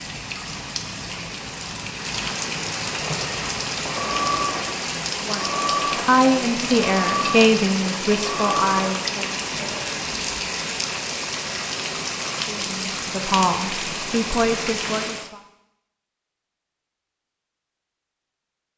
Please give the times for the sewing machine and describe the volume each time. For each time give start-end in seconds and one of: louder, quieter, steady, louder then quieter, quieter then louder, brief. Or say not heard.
2.8-9.9 steady.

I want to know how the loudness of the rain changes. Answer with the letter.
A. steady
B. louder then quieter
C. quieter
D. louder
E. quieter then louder
A.